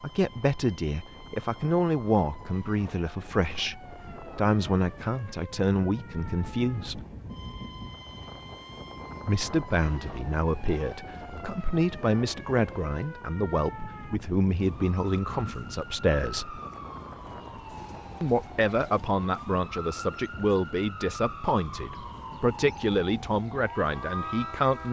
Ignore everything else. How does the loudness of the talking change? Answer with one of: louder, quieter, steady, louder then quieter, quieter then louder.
steady.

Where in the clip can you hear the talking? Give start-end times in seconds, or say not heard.
0.0-7.0, 9.2-16.6, 18.2-24.8.